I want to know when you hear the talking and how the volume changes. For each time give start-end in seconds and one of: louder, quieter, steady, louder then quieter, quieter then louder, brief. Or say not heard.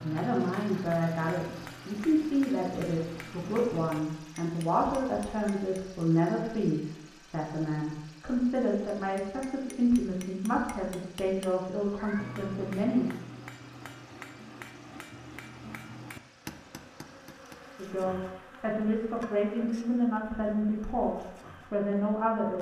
0.0-13.1 steady
17.8-22.5 steady.